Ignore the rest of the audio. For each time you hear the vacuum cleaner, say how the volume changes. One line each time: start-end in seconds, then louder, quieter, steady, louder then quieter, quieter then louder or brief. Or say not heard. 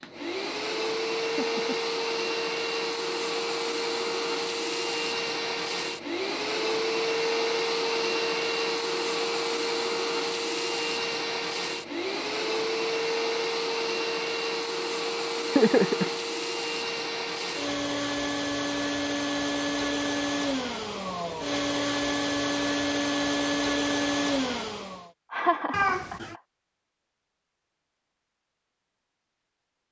0.0-25.1 steady.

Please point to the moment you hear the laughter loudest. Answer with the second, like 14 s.
16 s.